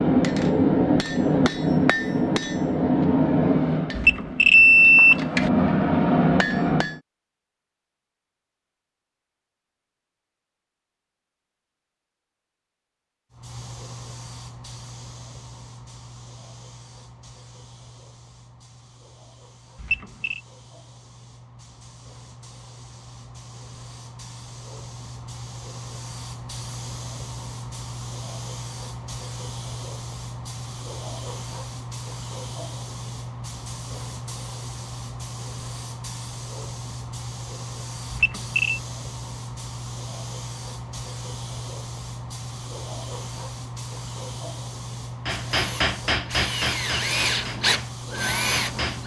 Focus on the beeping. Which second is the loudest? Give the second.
5 s.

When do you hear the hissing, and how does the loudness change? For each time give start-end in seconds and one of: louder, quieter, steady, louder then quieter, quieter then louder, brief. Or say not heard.
13.3-49.0 louder.